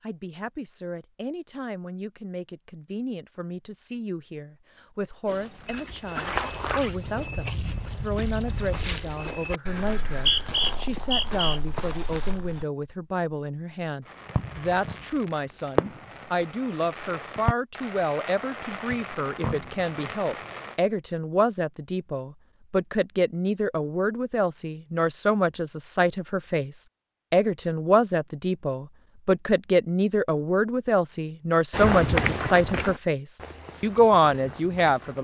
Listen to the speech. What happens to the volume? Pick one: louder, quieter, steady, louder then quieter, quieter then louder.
louder.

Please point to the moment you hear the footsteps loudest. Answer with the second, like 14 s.
32 s.